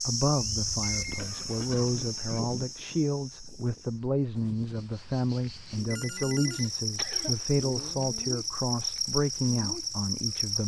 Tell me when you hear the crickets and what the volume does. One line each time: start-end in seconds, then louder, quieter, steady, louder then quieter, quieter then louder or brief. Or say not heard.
0.0-10.6 quieter then louder.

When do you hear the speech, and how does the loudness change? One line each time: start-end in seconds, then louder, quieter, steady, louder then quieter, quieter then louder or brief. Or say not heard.
0.0-10.6 steady.